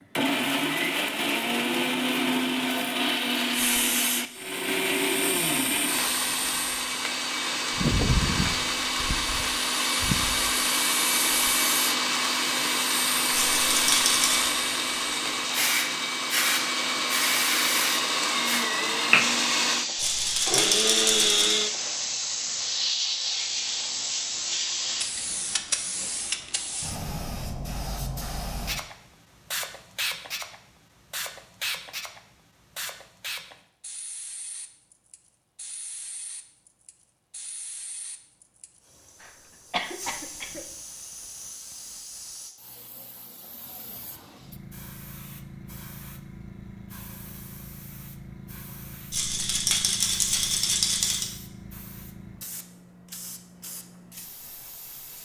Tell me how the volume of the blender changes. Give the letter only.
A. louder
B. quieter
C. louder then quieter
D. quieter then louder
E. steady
E.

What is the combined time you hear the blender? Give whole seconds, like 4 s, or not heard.
22 s.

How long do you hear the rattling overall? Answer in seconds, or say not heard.
5 s.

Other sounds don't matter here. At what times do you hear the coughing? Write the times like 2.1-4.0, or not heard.
39.2-40.6.